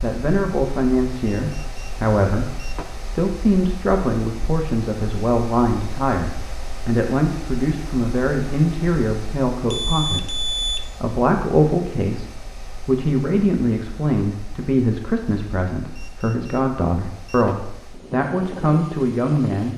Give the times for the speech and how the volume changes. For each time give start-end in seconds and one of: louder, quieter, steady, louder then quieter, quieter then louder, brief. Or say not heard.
0.0-19.7 steady.